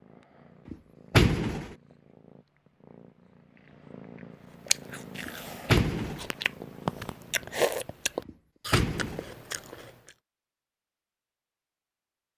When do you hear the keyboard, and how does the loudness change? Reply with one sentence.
The keyboard can't be heard in this clip.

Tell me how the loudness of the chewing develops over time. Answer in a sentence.
The loudness of the chewing goes up, then down.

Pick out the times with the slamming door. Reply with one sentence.
You can hear the slamming door from 0.7 to 1.8 s, from 5.2 to 6.3 s and from 8.2 to 9.3 s.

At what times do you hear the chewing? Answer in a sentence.
You can hear the chewing from 4.7 to 10.1 s.